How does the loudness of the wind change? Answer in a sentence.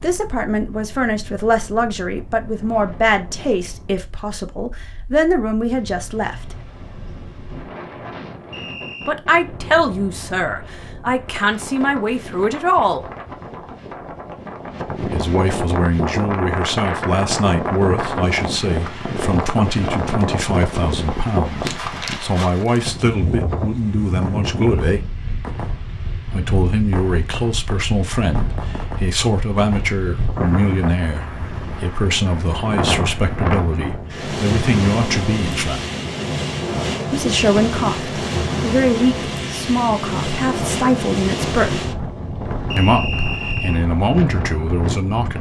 The volume of the wind goes up.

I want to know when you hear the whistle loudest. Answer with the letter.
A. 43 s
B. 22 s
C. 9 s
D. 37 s
A.